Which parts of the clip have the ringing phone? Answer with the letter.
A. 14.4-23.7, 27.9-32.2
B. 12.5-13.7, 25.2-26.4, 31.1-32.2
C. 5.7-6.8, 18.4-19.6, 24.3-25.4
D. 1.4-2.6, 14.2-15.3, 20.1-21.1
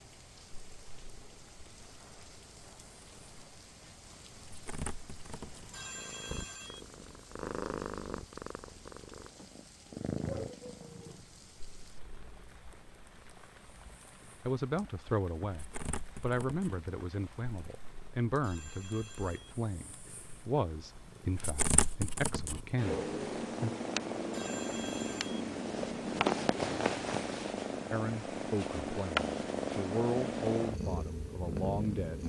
C.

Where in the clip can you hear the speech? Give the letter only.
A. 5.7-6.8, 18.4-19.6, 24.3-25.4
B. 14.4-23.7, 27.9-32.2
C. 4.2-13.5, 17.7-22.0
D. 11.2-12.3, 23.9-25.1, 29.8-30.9
B.